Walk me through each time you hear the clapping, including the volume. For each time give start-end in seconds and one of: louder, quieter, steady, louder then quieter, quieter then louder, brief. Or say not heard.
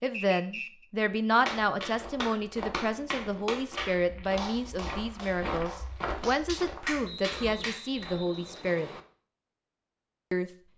1.4-8.1 quieter then louder.